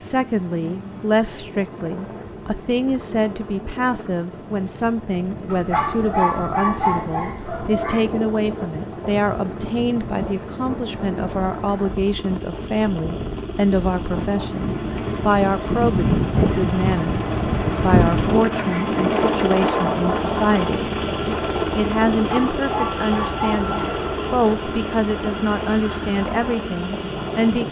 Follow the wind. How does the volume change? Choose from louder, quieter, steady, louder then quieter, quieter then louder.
louder then quieter.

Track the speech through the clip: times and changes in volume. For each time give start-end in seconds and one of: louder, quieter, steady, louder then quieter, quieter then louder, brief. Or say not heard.
0.0-27.6 steady.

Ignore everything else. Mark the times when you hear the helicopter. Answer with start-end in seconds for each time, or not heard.
0.0-27.6.